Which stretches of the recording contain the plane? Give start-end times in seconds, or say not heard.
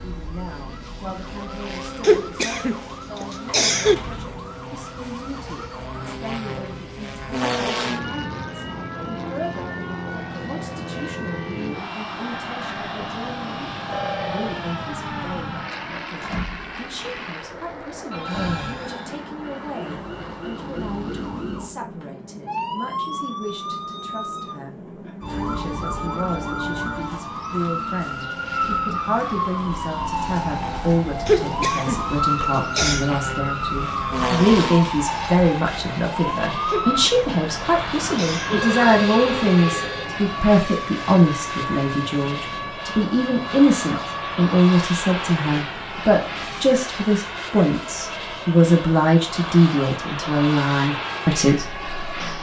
0.0-52.3.